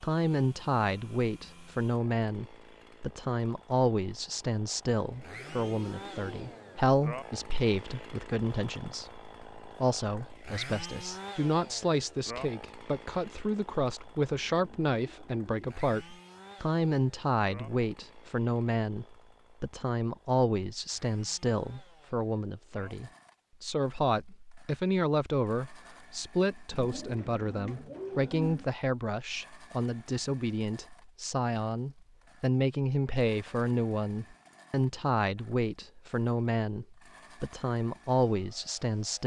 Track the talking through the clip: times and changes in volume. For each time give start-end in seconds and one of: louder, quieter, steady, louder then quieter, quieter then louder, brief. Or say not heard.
0.0-39.2 steady.